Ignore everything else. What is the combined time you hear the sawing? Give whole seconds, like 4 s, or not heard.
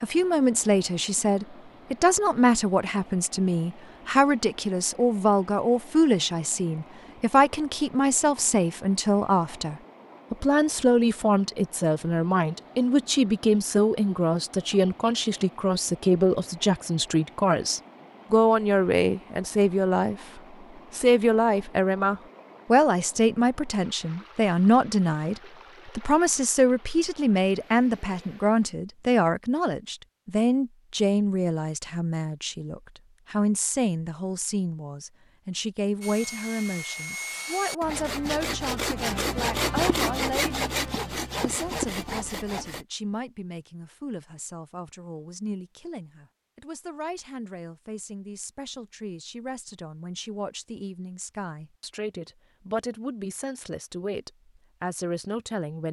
7 s.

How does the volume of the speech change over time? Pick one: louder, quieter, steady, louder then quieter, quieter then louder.
quieter.